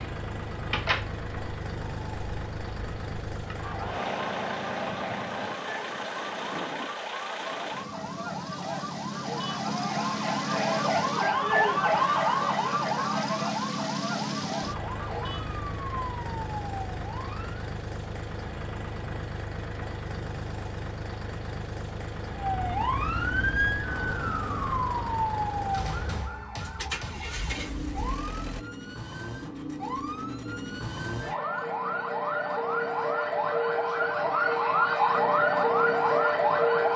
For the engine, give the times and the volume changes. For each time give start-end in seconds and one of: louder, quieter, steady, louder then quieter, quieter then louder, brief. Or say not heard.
0.0-28.6 steady.